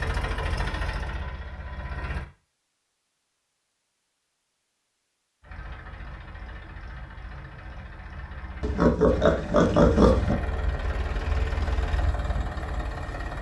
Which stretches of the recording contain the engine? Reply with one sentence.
The engine can be heard from 0.0 to 2.2 s and from 5.4 to 13.3 s.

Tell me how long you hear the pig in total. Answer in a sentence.
The pig can be heard for 2 seconds in total.